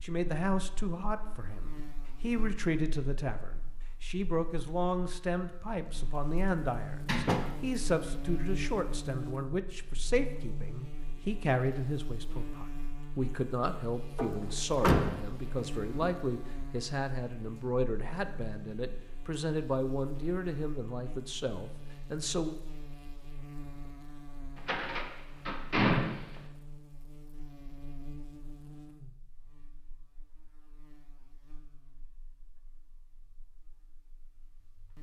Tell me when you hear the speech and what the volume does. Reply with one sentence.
The speech can be heard from 0.0 to 22.5 s, at a steady volume.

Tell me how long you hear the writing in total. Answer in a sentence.
You can't hear the writing here.